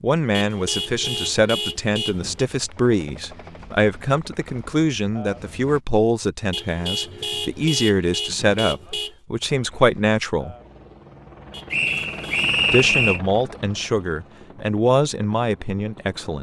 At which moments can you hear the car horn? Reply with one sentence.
You can hear the car horn from 0.3 to 2.5 s, from 6.5 to 9.2 s and from 11.5 to 12.5 s.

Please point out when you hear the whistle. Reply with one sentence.
The whistle can be heard from 11.7 to 13.2 s.